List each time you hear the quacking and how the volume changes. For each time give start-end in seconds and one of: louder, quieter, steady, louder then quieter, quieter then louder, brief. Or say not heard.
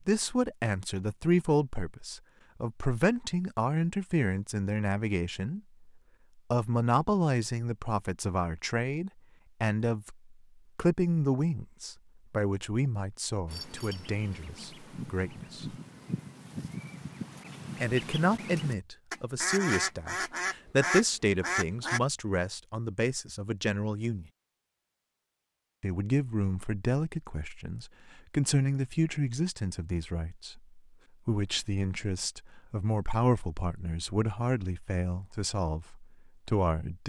13.4-22.0 louder.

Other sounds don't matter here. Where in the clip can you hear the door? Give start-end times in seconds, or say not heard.
not heard.